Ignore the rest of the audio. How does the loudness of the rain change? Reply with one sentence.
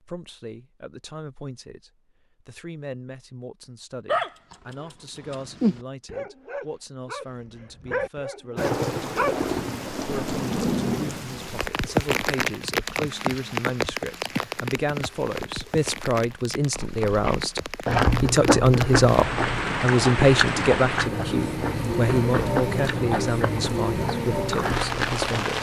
The volume of the rain goes down, then up.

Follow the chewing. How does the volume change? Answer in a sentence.
The volume of the chewing goes down.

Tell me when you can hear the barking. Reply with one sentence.
You can hear the barking from 4.0 to 9.4 s.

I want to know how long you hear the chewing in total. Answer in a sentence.
The chewing can be heard for 9 seconds in total.